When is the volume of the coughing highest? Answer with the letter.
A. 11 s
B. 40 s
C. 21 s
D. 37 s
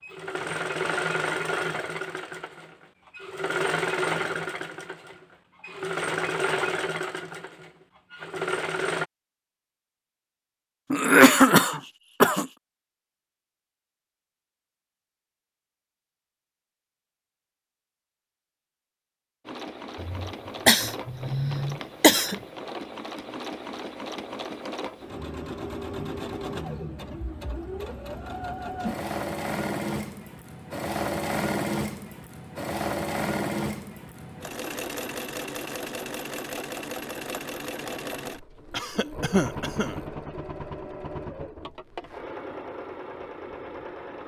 A.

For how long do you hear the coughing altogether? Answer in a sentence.
You can hear the coughing for 5 seconds altogether.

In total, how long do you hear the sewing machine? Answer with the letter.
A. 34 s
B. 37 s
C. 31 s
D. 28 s
A.